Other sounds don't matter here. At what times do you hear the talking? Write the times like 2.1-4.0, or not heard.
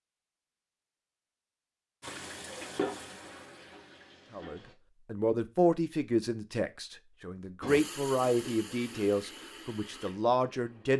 4.3-10.9.